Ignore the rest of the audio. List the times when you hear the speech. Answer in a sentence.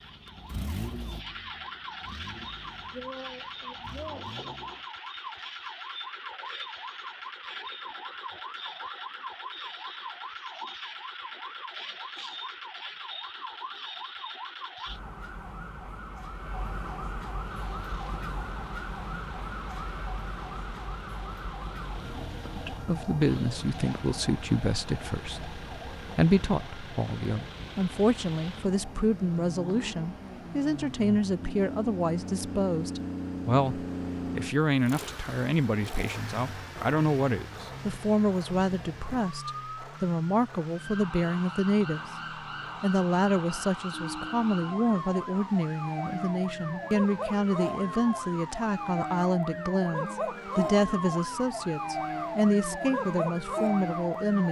The speech can be heard from 22.6 to 42.0 s and from 42.8 to 54.4 s.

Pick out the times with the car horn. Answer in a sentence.
You can't hear the car horn here.